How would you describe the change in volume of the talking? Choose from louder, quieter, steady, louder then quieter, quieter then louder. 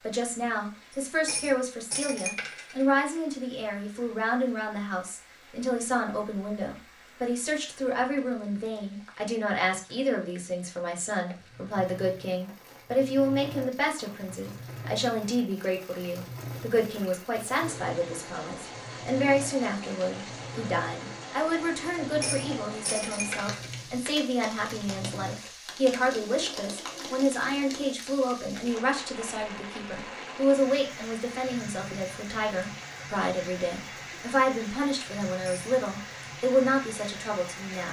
steady.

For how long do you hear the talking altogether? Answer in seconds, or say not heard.
38 s.